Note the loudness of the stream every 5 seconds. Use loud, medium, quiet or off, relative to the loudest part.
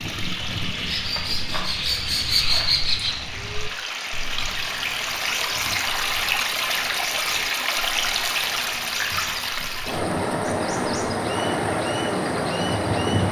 medium, loud, loud.